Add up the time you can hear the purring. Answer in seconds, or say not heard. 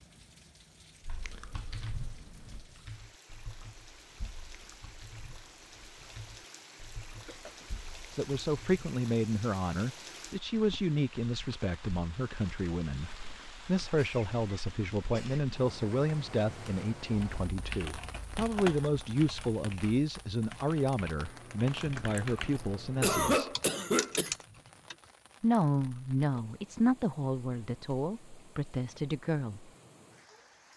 not heard.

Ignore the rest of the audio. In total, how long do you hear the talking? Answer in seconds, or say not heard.
20 s.